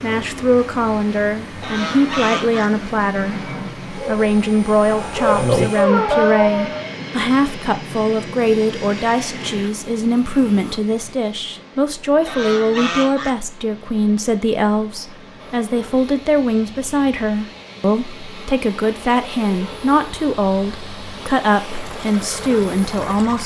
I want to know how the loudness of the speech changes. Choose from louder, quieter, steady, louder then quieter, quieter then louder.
steady.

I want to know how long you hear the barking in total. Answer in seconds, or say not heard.
3 s.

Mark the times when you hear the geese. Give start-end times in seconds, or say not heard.
1.6-2.7, 12.2-13.3.